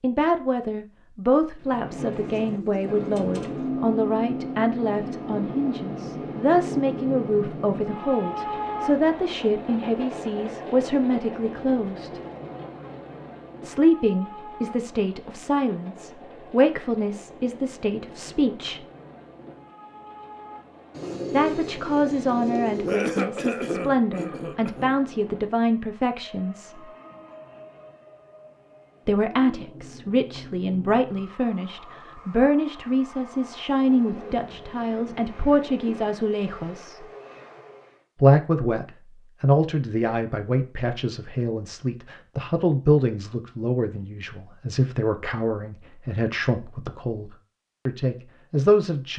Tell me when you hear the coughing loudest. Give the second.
23 s.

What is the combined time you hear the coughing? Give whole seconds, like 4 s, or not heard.
2 s.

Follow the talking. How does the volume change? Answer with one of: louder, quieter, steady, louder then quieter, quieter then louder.
steady.